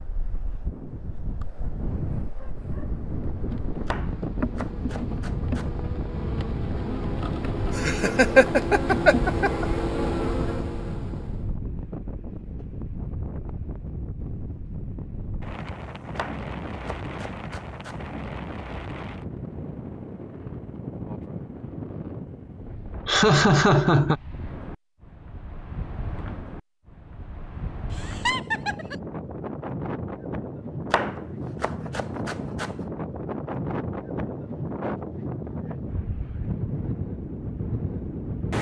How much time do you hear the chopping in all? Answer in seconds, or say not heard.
6 s.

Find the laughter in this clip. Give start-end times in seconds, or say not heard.
7.8-9.7, 23.1-24.2, 27.9-28.9.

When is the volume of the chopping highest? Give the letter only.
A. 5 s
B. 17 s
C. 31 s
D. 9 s
C.